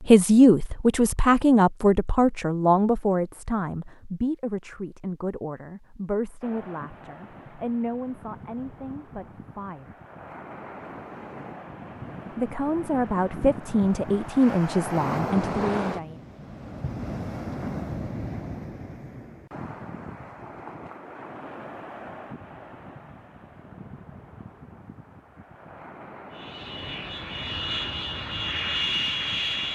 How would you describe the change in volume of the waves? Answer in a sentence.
The loudness of the waves goes up, then down.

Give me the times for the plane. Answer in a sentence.
You can hear the plane from 26.4 to 29.7 s.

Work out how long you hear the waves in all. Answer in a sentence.
You can hear the waves for 23 seconds altogether.